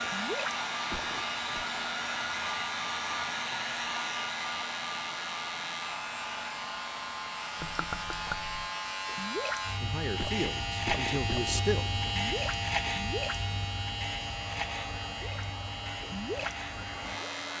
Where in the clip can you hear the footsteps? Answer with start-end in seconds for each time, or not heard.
not heard.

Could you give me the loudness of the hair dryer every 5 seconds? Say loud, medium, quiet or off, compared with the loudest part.
loud, medium, quiet, medium.